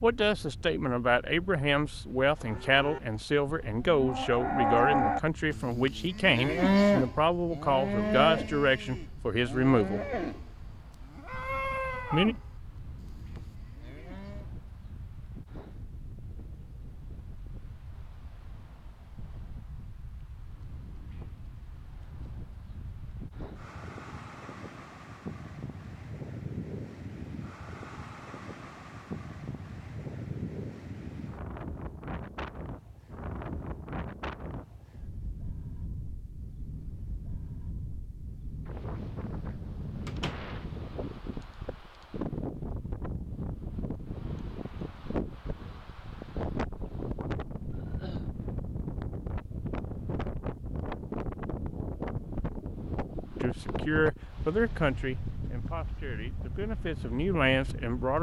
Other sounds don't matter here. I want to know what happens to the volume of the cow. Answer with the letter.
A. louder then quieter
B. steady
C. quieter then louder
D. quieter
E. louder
D.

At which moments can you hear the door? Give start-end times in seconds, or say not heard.
40.0-40.5.